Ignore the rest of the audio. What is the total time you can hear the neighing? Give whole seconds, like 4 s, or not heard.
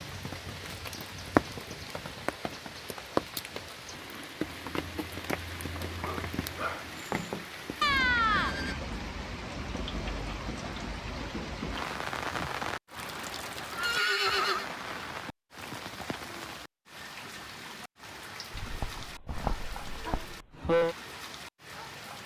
2 s.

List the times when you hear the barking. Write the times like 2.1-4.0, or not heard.
5.8-7.5, 18.5-20.6.